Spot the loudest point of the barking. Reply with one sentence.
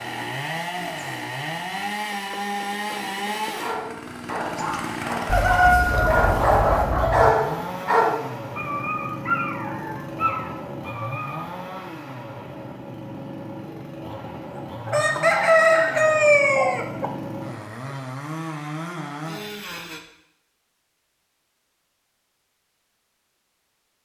The volume of the barking peaks at 7 seconds.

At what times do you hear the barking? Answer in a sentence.
The barking can be heard from 3.5 to 11.5 s.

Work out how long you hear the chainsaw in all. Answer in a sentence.
You can hear the chainsaw for 20 seconds altogether.